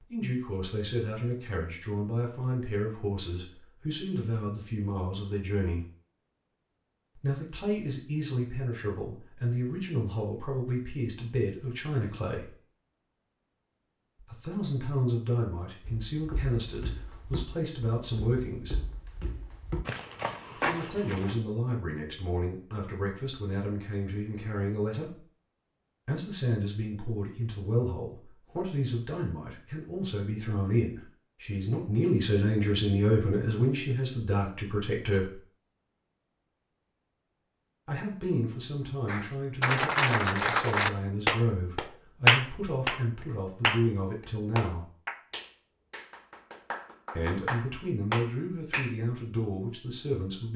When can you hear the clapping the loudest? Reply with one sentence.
The volume of the clapping peaks at 42 seconds.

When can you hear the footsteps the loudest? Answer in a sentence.
The volume of the footsteps peaks at 21 seconds.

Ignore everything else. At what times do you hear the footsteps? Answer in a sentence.
The footsteps can be heard from 15.8 to 21.4 s.